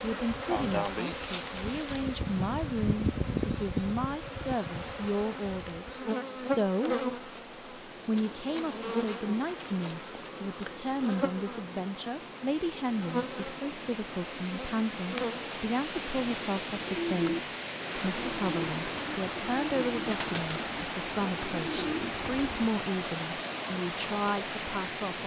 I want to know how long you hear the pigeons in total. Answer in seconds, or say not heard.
6 s.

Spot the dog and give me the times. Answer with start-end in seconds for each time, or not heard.
not heard.